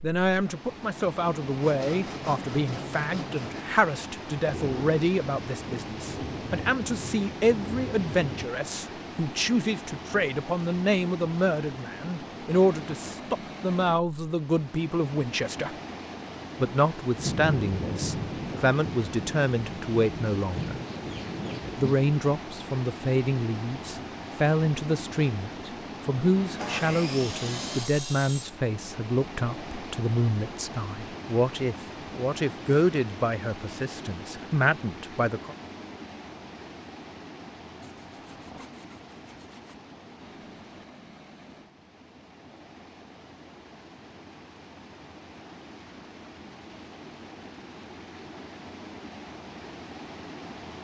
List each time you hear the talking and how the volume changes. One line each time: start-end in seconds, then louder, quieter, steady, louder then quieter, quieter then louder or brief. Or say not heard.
0.0-15.8 steady
16.6-20.8 quieter then louder
21.8-35.5 steady.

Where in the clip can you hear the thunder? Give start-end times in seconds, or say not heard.
4.5-8.4, 17.1-22.0, 38.1-38.7.